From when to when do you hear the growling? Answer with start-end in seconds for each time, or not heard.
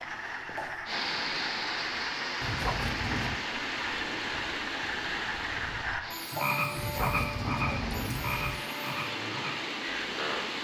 2.4-3.5, 6.8-8.6.